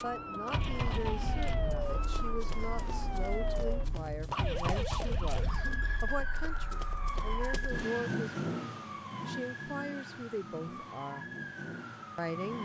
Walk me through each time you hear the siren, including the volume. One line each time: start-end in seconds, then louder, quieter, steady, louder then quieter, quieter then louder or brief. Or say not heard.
0.0-12.6 quieter.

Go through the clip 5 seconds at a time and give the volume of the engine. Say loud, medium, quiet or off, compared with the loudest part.
loud, loud, medium.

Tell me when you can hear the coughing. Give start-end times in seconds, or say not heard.
5.4-6.1.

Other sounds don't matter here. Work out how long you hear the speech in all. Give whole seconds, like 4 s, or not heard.
12 s.